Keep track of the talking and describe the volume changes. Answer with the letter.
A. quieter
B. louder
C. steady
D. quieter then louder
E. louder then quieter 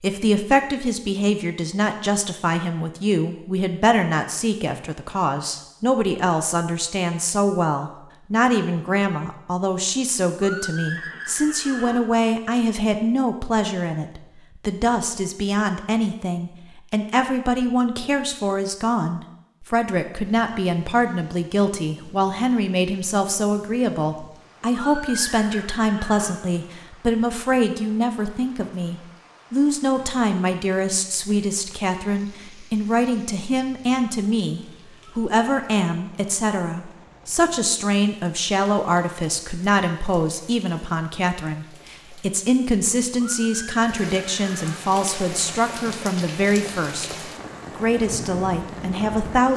C.